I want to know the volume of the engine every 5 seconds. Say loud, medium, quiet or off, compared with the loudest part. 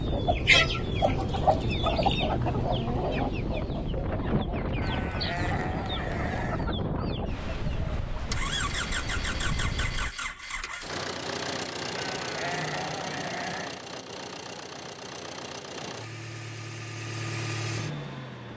off, loud, loud, loud.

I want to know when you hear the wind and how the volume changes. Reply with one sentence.
The wind can be heard from 0.0 to 10.1 s, at a steady volume.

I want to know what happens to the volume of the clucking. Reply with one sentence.
The loudness of the clucking goes down.